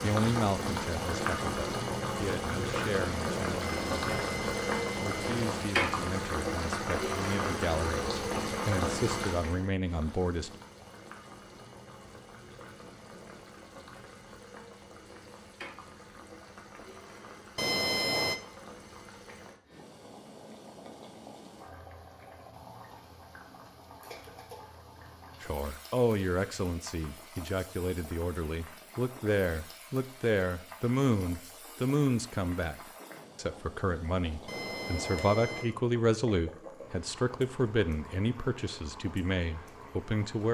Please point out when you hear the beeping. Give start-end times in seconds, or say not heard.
3.6-5.5, 17.6-18.4, 34.5-35.7.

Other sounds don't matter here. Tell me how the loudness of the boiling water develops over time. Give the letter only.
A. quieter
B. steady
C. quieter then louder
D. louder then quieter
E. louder
A.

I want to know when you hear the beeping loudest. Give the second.
18 s.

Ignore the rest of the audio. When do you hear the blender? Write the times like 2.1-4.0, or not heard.
not heard.